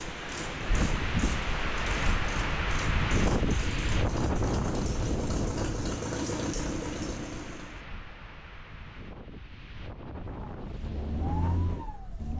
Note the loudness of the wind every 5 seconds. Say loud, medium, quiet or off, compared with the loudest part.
loud, medium, medium.